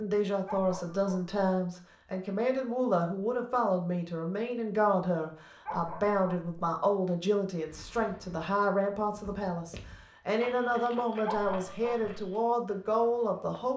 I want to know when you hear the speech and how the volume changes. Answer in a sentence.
You can hear the speech from 0.0 to 13.7 s, at a steady volume.